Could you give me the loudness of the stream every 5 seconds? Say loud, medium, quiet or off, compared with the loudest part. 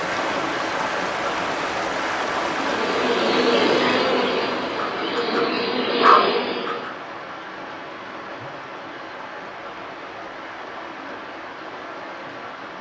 loud, medium, medium.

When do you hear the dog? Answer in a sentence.
You can hear the dog from 4.8 to 6.9 s.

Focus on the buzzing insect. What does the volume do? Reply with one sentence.
The loudness of the buzzing insect goes down, then up.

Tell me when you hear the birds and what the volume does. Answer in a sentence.
The birds can't be heard in this clip.